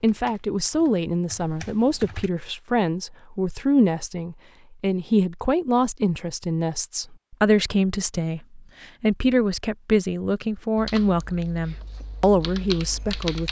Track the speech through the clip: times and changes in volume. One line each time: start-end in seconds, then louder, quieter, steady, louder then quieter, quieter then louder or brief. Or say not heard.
0.0-13.4 steady.